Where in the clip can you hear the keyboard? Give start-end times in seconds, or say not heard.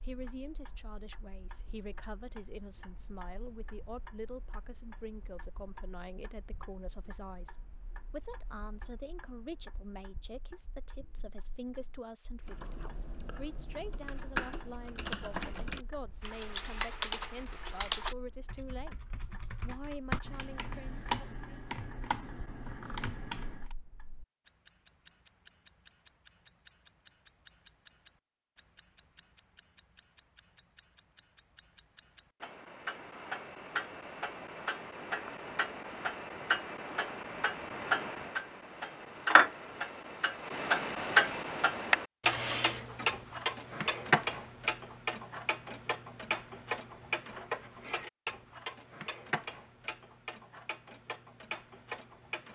12.4-23.8.